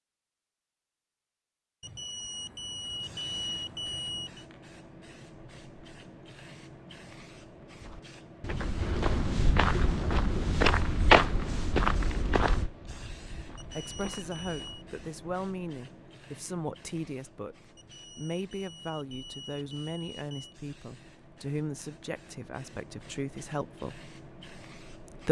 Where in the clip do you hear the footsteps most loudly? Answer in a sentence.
The loudest moment of the footsteps is at 11 seconds.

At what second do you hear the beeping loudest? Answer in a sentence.
The volume of the beeping peaks at 3 seconds.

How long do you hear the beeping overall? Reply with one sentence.
The beeping can be heard for 7 seconds in total.